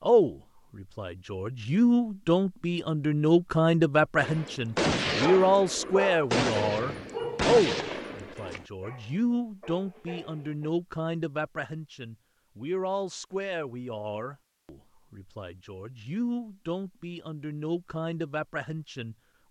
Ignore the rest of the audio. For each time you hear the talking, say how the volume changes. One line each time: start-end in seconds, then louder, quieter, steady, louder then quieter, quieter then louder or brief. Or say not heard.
0.0-19.4 quieter.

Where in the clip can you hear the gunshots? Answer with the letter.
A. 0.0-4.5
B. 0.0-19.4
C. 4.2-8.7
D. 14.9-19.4
C.